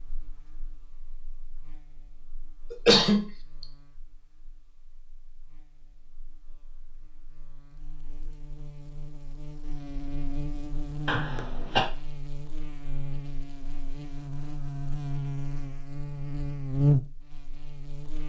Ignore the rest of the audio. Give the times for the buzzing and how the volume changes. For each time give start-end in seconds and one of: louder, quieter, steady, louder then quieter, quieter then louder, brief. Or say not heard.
0.0-18.2 quieter then louder.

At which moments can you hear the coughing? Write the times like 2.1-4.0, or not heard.
2.7-3.2, 11.1-11.9.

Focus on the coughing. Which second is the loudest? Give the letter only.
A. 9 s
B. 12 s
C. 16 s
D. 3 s
D.